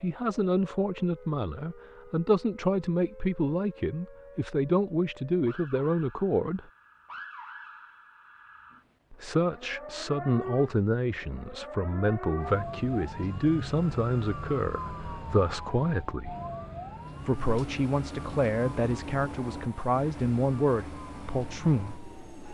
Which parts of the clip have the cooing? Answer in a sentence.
You can't hear the cooing here.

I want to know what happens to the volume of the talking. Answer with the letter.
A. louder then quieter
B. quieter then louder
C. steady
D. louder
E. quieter
C.